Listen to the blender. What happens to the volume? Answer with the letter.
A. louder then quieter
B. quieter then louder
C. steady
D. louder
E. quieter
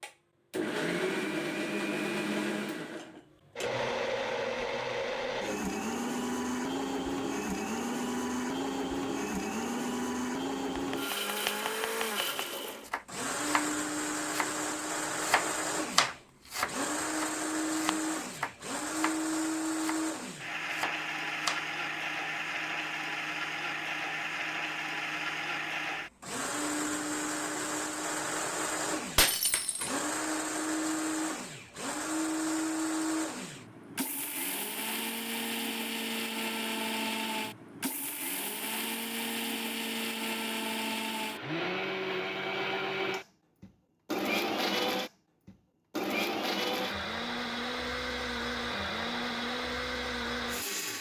C.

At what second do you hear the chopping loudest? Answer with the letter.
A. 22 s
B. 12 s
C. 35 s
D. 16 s
D.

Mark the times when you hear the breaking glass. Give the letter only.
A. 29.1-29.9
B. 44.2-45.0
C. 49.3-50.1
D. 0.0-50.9
A.